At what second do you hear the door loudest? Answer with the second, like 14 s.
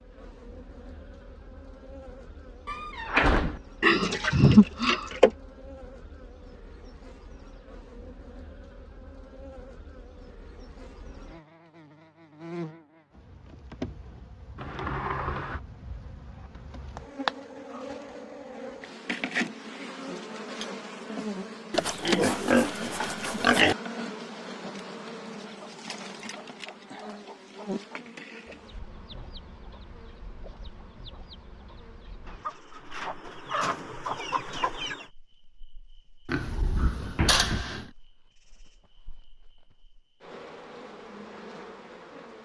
3 s.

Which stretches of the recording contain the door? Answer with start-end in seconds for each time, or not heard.
2.6-3.6, 14.6-15.6, 36.5-37.6.